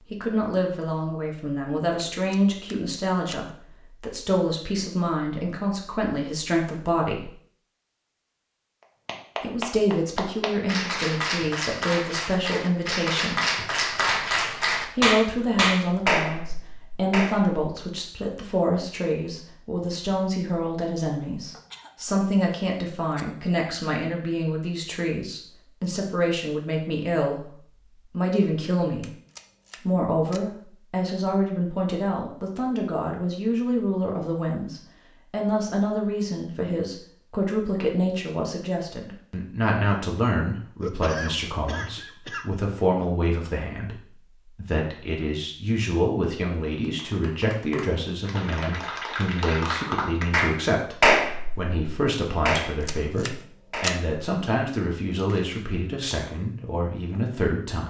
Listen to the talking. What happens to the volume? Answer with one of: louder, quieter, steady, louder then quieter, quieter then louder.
steady.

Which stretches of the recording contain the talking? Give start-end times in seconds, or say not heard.
0.0-7.3, 9.4-13.5, 14.8-29.1, 29.8-57.8.